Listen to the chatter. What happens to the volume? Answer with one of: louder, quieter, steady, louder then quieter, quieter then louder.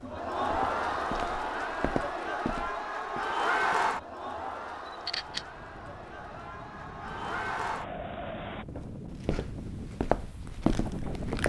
quieter then louder.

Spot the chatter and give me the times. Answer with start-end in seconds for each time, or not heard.
0.0-8.7.